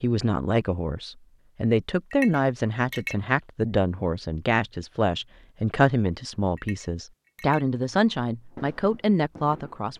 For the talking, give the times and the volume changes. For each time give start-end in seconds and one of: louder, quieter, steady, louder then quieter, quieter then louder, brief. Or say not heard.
0.0-9.9 steady.